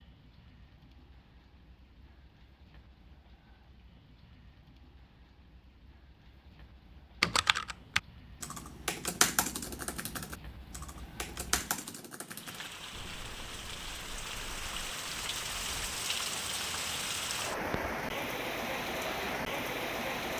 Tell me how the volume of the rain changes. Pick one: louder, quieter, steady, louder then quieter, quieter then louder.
louder.